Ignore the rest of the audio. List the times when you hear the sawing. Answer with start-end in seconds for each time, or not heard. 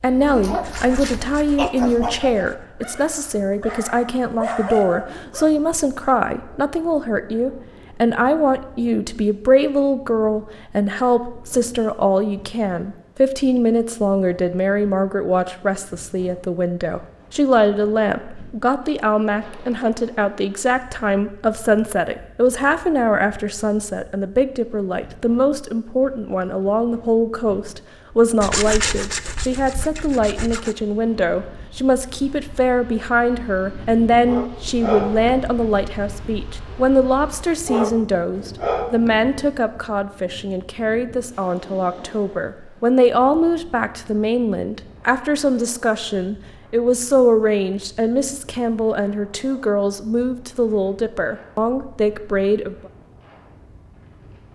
0.6-2.6, 28.4-30.8.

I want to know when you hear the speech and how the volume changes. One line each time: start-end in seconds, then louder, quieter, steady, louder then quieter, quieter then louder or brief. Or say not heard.
0.0-52.8 steady.